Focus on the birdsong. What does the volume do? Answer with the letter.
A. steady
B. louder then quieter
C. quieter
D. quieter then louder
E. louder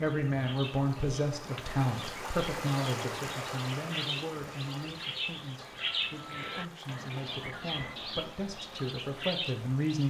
E.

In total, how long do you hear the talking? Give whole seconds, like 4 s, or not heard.
10 s.